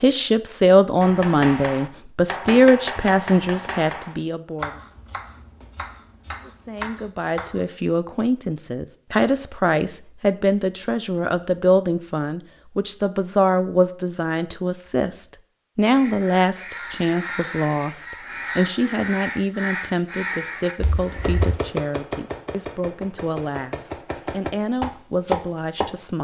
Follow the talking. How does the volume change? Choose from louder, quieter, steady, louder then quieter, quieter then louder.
quieter.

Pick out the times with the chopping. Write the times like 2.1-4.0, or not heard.
1.0-7.7, 21.2-25.9.